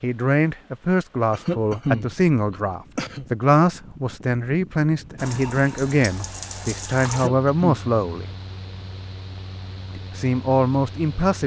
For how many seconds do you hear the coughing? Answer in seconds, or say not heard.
3 s.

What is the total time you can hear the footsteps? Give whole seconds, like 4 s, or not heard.
not heard.